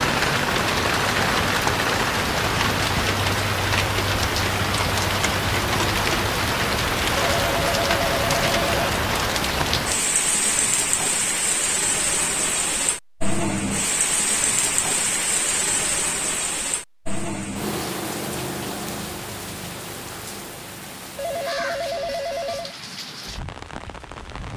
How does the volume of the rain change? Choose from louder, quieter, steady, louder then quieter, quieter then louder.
quieter.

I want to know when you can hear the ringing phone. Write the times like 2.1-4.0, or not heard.
7.1-8.9, 21.1-22.8.